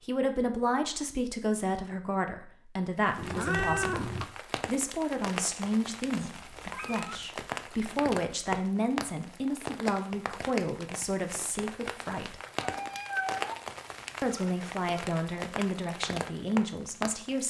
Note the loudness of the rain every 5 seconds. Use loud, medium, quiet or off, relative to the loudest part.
medium, loud, loud, loud.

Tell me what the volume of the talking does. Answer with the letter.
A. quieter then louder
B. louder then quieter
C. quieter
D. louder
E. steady
E.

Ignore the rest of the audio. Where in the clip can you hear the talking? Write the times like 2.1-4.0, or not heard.
0.1-12.3, 14.2-17.4.